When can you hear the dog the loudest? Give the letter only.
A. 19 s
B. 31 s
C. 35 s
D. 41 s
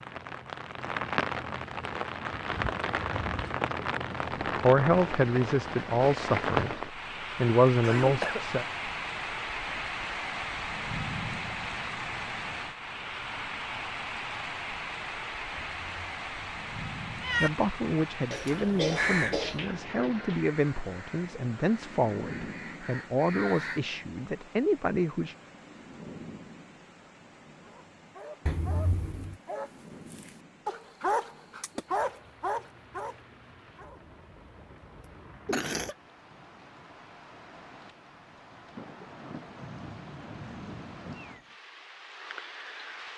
B.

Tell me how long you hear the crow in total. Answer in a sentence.
You can hear the crow for 5 seconds altogether.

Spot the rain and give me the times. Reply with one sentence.
The rain can be heard from 0.0 to 43.1 s.